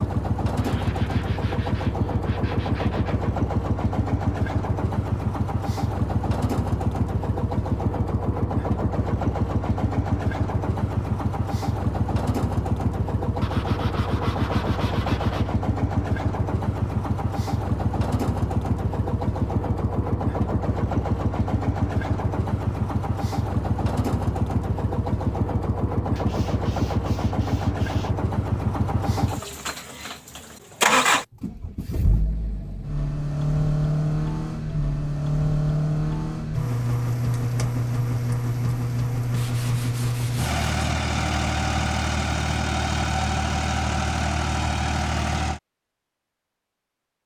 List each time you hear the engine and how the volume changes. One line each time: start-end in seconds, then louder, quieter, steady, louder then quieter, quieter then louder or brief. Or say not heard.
0.0-45.6 steady.